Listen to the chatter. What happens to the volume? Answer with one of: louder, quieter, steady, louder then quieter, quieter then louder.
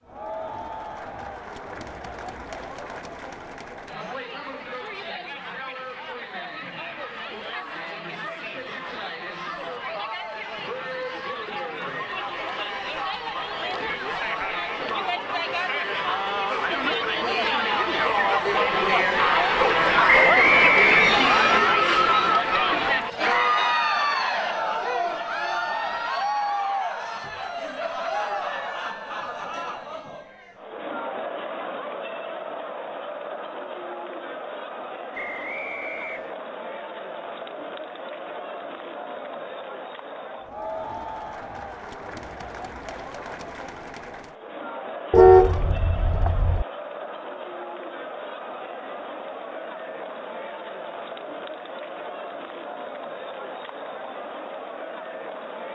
louder then quieter.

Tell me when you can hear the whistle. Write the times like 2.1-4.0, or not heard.
20.1-21.6, 35.1-36.4.